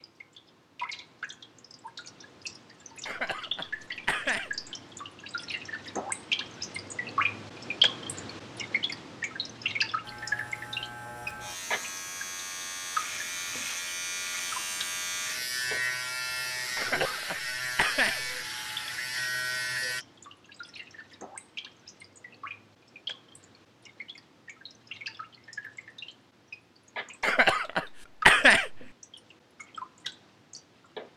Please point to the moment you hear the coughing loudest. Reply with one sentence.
The loudest moment of the coughing is at 28 seconds.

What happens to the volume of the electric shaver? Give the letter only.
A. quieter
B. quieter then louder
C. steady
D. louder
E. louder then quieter
D.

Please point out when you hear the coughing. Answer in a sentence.
The coughing can be heard from 3.0 to 4.7 s, from 16.8 to 18.4 s and from 27.2 to 28.9 s.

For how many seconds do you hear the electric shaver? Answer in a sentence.
You can hear the electric shaver for 10 seconds altogether.